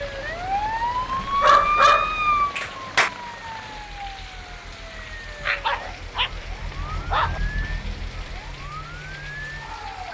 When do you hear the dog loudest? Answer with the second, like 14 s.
2 s.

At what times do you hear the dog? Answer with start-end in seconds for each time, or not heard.
1.1-3.1, 5.4-6.3, 7.0-7.4.